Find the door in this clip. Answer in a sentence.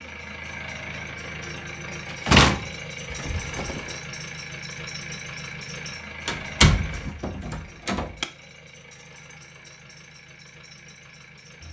The door can be heard from 2.2 to 3.8 s and from 6.2 to 8.2 s.